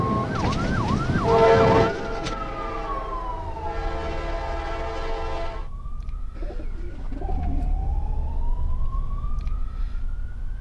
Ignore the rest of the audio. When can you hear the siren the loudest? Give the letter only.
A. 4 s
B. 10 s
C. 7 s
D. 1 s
D.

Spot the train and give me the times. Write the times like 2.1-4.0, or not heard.
0.0-5.7.